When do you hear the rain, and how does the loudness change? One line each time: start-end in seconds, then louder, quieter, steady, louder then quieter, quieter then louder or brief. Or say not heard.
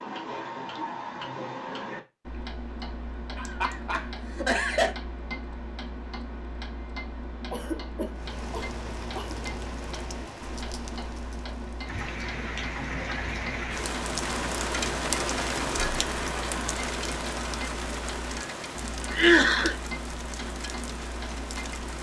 8.1-21.9 louder then quieter.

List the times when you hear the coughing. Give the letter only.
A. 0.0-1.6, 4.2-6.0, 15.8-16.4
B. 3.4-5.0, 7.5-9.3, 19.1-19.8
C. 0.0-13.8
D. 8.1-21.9
B.